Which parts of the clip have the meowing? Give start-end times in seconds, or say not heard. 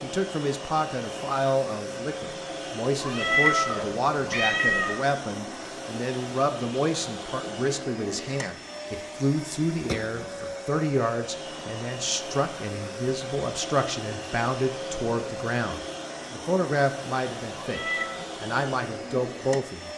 3.0-5.0, 17.6-18.1.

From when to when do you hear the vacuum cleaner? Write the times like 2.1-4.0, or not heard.
0.0-19.9.